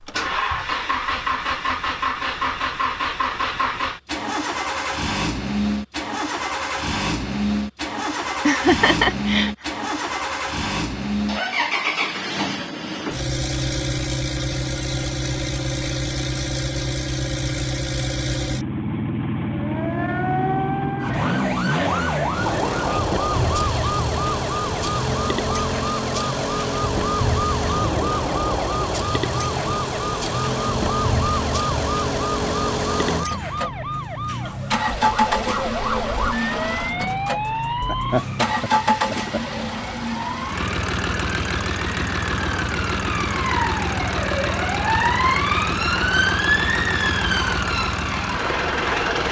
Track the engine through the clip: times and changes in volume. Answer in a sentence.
You can hear the engine from 0.0 to 49.2 s, at a steady volume.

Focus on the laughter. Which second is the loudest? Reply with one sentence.
The loudest moment of the laughter is at 9 seconds.